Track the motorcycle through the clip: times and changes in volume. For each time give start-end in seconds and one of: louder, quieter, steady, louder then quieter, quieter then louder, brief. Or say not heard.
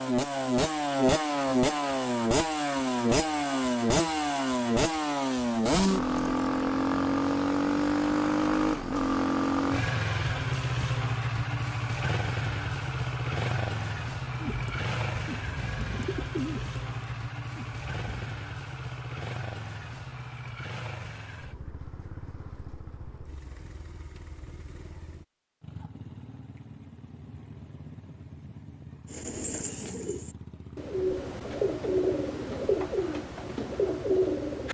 0.0-34.6 quieter.